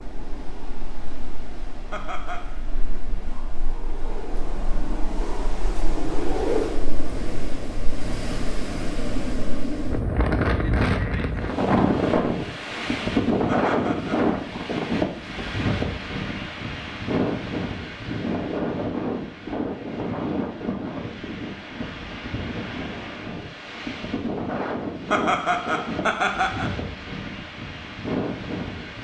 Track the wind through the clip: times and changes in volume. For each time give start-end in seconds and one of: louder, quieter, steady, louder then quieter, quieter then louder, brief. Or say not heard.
0.0-29.0 louder then quieter.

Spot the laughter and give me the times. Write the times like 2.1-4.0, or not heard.
1.9-2.5, 13.4-14.2, 25.1-26.7.